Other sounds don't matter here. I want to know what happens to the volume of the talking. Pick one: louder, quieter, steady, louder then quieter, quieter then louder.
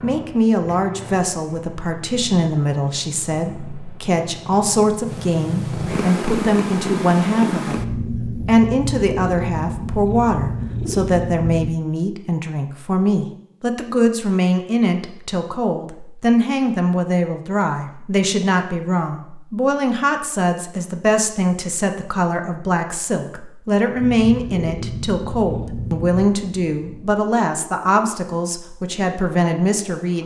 steady.